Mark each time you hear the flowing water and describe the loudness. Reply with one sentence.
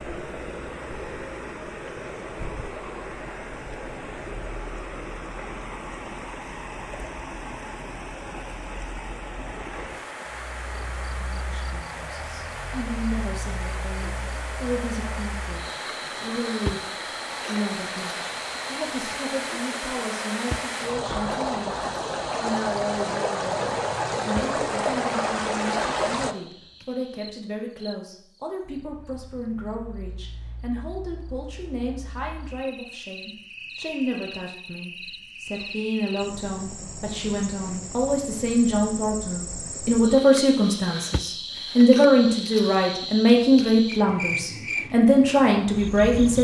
You can hear the flowing water from 0.0 to 26.4 s, getting louder.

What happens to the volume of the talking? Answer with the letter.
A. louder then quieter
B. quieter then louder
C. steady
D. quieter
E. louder
E.